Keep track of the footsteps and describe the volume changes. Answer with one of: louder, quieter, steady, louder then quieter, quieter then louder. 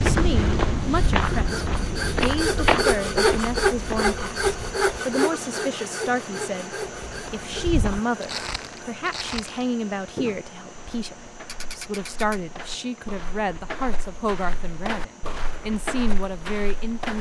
quieter then louder.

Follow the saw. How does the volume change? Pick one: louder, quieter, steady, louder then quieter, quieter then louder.
louder then quieter.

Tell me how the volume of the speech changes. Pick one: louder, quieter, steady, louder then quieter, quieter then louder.
steady.